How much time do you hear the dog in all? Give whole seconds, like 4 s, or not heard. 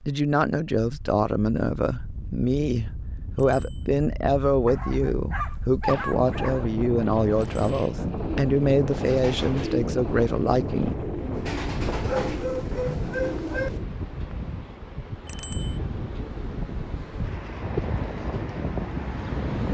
4 s.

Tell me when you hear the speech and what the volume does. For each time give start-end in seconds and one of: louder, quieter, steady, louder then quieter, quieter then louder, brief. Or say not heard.
0.1-10.9 steady.